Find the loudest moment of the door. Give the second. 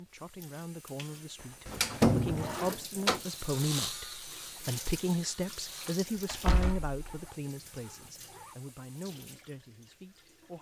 2 s.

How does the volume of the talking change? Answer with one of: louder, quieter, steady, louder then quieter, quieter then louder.
louder then quieter.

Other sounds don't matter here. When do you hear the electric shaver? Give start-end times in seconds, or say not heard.
3.0-6.0.